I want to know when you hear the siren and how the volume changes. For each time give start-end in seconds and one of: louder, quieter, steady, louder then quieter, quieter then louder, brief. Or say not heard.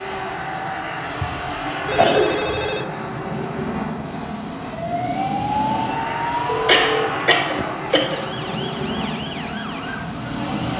4.7-10.7 quieter.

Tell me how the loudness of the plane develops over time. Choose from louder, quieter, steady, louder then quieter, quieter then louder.
steady.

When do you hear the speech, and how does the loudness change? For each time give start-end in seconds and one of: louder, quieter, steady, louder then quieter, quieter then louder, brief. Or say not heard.
not heard.